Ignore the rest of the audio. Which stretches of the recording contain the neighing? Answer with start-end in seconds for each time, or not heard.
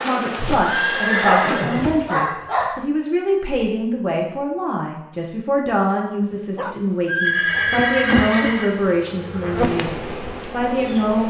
0.3-1.9, 7.0-8.8.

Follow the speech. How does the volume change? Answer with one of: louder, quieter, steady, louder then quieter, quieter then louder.
steady.